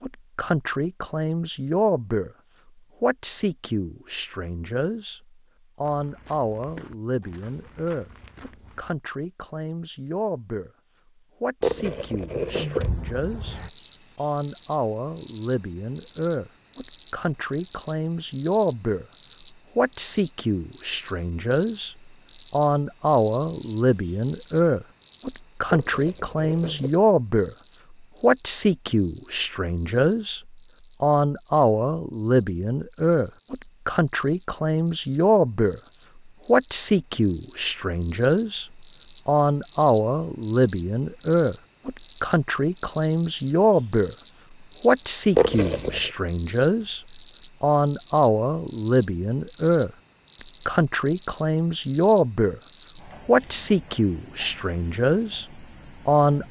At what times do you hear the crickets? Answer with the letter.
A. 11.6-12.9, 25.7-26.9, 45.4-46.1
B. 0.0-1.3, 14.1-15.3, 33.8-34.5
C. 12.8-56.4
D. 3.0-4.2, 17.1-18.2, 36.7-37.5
C.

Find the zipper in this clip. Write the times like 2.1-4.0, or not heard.
11.6-12.9, 25.7-26.9, 45.4-46.1.